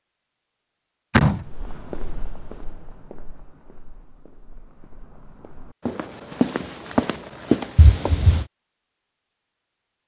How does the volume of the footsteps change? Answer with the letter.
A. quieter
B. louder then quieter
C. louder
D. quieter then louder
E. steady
D.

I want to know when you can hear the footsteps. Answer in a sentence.
You can hear the footsteps from 1.4 to 8.2 s.